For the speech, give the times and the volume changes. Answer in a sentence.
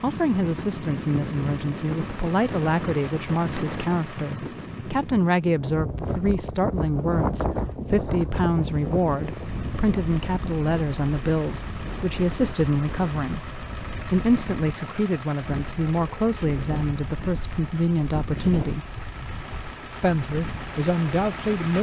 You can hear the speech from 0.0 to 18.9 s, at a steady volume; and briefly from 20.0 to 21.7 s.